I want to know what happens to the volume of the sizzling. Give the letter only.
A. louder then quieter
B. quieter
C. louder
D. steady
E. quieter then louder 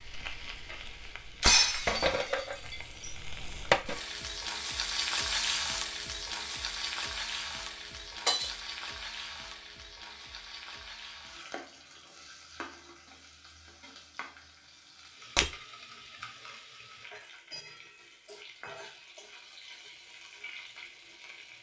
B.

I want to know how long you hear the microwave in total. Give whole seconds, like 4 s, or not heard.
not heard.